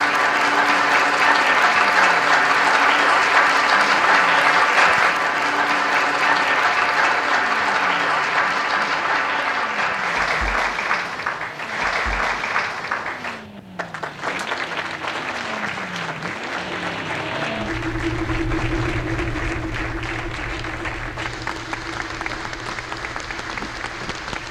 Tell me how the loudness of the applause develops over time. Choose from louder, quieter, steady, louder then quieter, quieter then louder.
quieter.